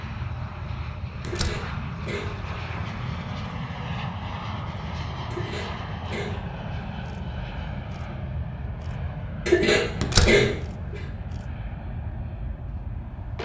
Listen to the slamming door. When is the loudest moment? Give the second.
10 s.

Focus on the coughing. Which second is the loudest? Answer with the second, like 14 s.
10 s.